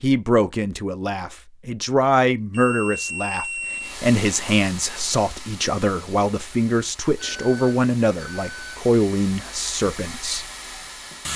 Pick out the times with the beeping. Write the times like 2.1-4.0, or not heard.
2.5-4.0, 7.2-8.8.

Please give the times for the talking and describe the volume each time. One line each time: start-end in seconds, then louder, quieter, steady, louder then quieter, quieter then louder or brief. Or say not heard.
0.0-10.4 steady.